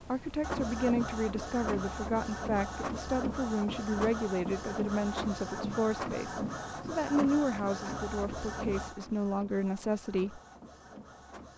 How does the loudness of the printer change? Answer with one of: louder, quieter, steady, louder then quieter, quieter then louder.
quieter.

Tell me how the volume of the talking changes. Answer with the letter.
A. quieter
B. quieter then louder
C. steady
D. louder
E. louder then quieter
C.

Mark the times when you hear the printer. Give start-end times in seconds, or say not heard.
0.0-11.5.